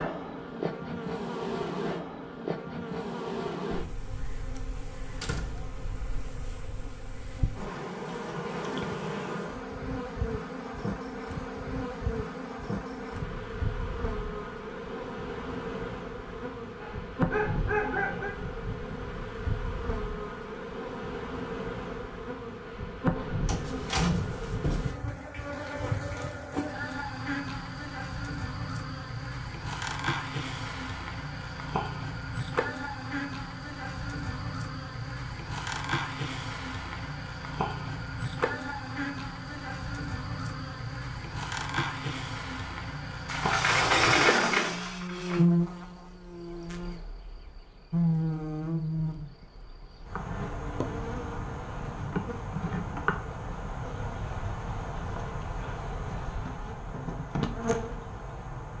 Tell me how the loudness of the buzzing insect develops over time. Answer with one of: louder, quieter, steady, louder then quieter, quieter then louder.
steady.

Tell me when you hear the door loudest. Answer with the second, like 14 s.
44 s.